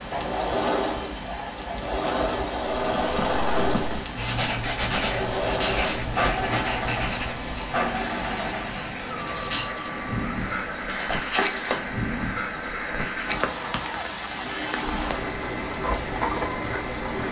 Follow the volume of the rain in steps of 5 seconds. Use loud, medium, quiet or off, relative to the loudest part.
medium, loud, loud, loud.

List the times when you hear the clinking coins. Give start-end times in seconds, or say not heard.
5.2-5.9, 9.2-9.9.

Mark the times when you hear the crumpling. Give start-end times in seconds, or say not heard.
10.8-11.8.